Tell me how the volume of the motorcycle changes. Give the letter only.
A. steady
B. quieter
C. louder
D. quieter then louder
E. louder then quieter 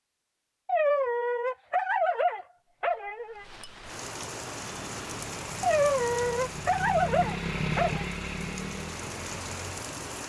E.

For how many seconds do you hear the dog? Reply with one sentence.
You can hear the dog for 5 seconds altogether.